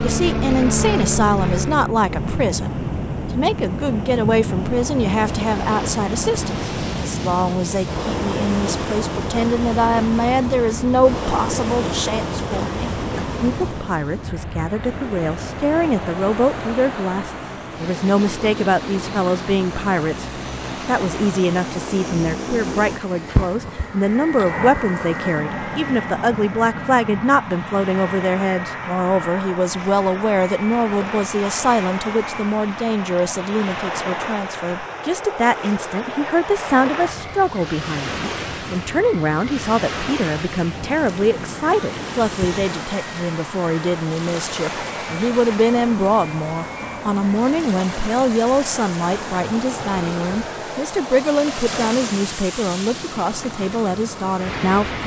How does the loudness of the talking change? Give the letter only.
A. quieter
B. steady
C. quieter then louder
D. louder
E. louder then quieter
B.